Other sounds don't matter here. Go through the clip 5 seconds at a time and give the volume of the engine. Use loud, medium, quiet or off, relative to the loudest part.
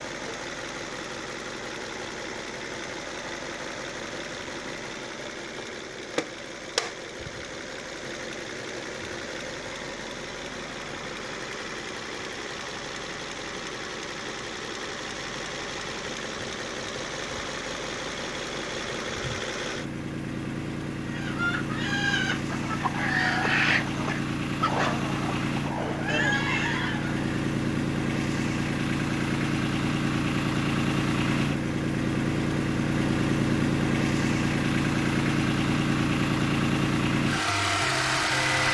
medium, medium, medium, medium, medium, loud, loud, loud.